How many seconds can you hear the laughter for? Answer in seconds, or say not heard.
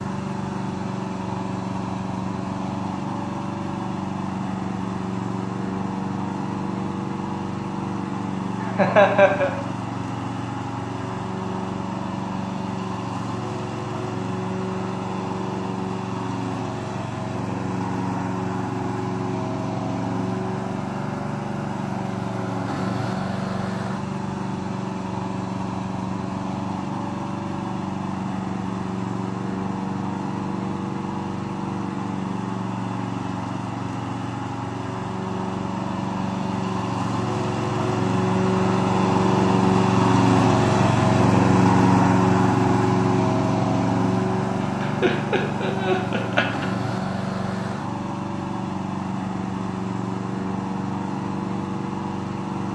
3 s.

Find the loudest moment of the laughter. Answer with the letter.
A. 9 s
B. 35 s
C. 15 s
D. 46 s
A.